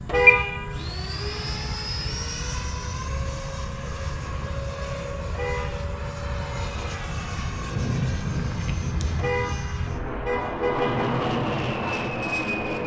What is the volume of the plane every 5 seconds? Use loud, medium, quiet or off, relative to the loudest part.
loud, medium, loud.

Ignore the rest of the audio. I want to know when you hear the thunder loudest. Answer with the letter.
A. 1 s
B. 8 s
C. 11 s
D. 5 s
B.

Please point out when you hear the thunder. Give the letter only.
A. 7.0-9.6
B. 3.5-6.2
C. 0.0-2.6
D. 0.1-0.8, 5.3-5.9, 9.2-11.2
A.